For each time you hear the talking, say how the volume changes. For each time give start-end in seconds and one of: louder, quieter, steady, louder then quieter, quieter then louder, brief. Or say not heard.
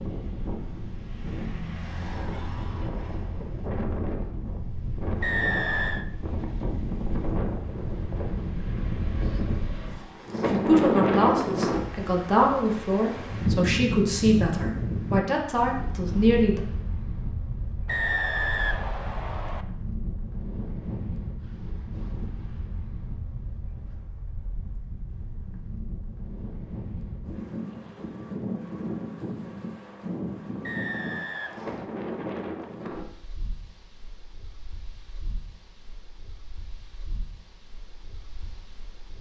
10.4-16.6 steady.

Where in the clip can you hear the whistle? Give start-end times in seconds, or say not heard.
5.2-6.0, 17.9-19.6, 30.6-31.9.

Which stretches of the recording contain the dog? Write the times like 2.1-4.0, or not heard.
not heard.